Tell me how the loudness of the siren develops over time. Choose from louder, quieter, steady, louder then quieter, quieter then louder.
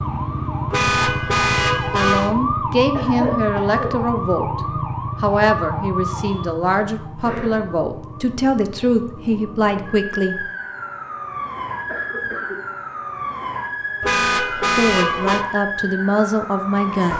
quieter then louder.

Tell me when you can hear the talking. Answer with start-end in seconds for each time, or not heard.
1.9-10.4, 14.8-17.1.